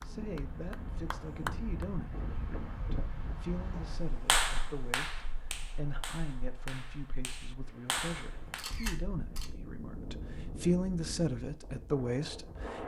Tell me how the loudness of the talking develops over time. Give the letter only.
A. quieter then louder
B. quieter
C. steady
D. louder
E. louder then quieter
D.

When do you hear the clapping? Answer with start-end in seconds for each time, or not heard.
0.0-1.9, 3.8-8.7.